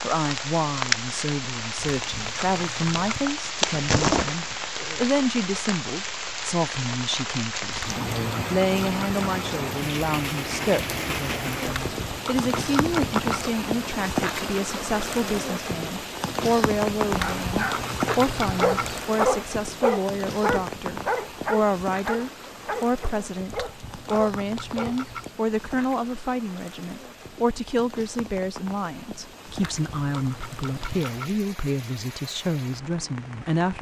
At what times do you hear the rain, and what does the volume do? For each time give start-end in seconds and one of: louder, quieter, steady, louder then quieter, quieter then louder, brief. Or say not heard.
0.0-33.7 quieter.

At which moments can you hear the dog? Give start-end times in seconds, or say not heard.
17.2-25.0.